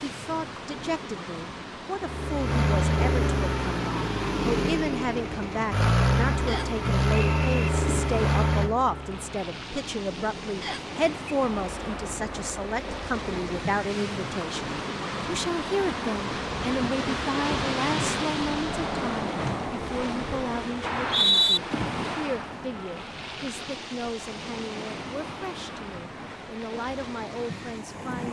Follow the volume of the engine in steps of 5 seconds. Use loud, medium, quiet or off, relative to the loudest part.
loud, loud, quiet, off, off, off.